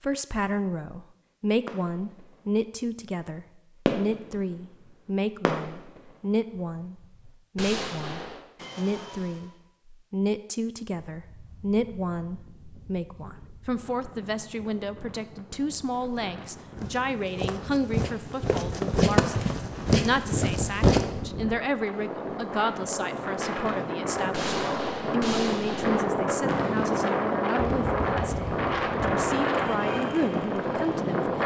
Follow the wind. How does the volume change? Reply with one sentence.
The loudness of the wind goes up.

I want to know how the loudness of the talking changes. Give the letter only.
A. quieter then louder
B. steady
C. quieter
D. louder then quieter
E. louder
B.